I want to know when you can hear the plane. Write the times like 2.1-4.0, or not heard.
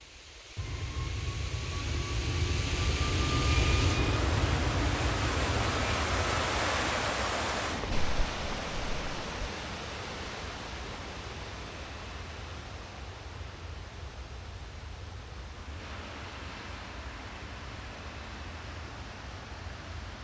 0.0-20.1.